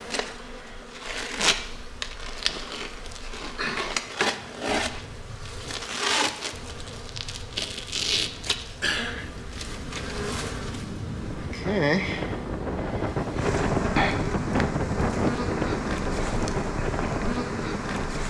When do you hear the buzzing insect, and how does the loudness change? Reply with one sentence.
The buzzing insect can be heard from 0.0 to 18.2 s, at a steady volume.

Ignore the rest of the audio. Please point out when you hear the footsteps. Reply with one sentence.
You can't hear the footsteps here.